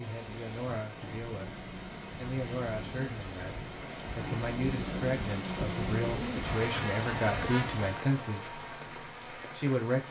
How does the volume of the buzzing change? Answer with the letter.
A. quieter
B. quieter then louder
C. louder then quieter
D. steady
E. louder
C.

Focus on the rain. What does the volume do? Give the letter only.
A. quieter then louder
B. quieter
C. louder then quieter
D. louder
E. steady
C.